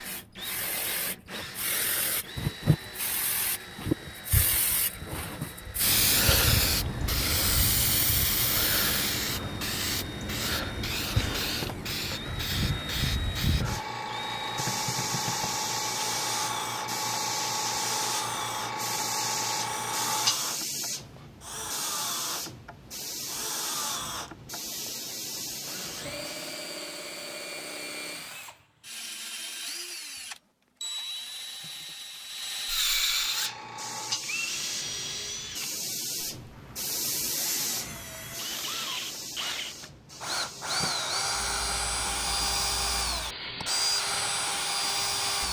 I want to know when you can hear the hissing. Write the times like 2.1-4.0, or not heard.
0.0-26.6, 33.0-45.4.